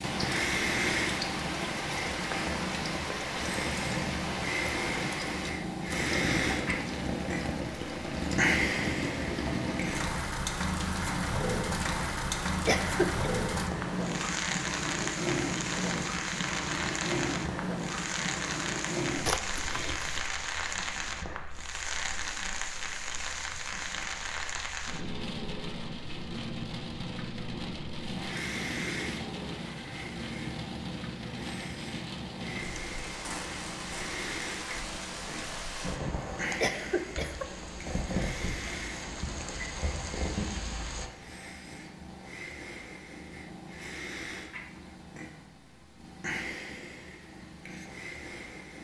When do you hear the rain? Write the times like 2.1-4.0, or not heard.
0.0-41.1.